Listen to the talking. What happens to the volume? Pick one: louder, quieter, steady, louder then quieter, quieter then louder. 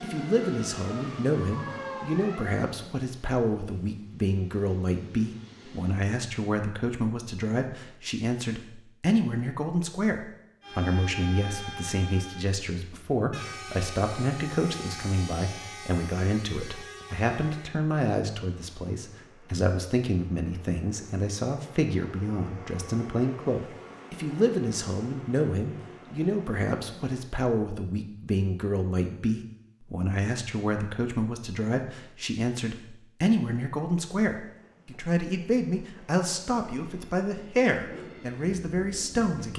steady.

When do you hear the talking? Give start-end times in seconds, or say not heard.
0.0-39.5.